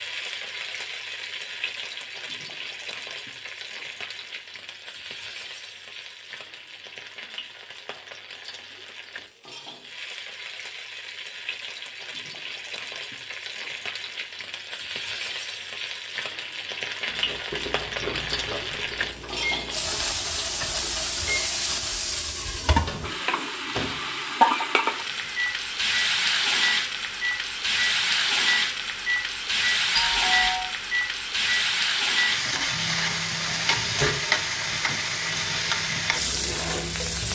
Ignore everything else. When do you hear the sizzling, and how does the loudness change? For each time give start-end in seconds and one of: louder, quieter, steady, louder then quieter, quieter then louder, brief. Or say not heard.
0.0-37.3 louder.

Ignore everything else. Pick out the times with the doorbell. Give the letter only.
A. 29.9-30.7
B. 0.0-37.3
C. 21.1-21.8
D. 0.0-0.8
A.